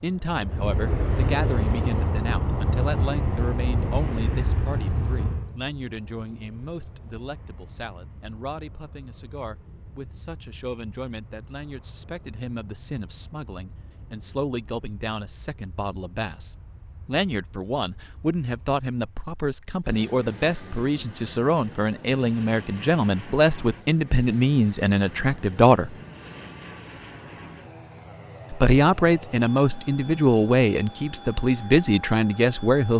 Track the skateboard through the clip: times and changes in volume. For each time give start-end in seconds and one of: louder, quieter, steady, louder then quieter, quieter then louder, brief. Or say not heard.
not heard.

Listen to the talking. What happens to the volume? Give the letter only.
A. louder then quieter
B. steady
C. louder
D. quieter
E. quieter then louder
E.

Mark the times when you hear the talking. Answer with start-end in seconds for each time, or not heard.
0.0-25.9, 28.5-32.9.